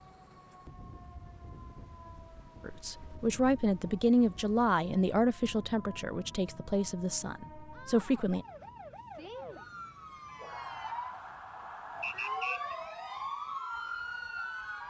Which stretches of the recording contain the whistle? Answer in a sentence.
The whistle can be heard from 12.0 to 12.8 s.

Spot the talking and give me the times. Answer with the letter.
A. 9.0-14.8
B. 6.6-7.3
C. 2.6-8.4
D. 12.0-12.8
C.